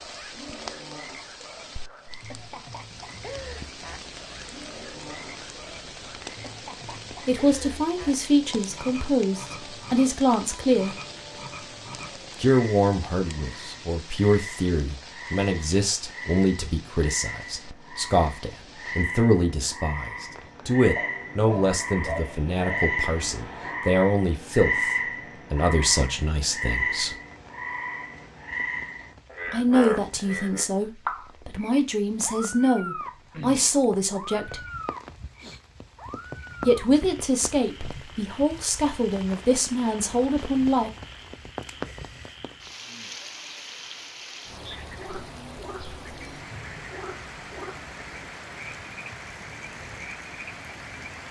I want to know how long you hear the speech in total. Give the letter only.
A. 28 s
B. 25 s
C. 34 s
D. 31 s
A.